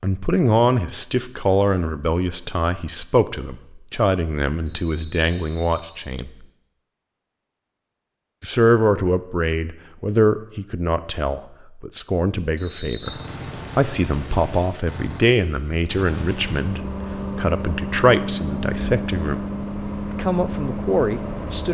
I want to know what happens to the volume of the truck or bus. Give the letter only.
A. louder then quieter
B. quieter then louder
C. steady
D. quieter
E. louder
C.